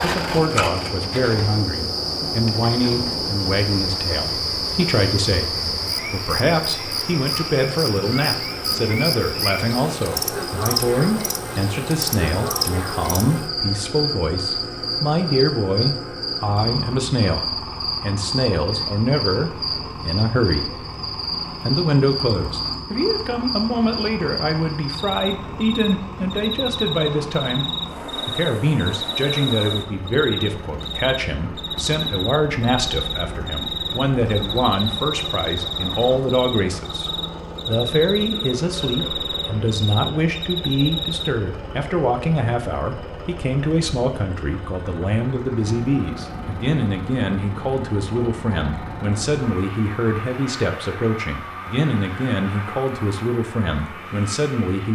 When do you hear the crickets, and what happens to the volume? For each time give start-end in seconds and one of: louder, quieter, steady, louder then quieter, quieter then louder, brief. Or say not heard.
0.0-41.3 steady.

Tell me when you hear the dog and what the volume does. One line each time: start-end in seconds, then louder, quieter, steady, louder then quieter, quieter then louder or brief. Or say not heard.
not heard.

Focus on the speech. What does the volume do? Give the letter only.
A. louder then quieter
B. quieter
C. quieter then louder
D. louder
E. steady
E.